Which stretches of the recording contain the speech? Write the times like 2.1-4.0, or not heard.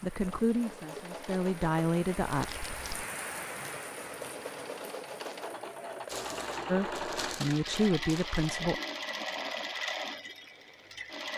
0.0-2.5, 6.7-8.8.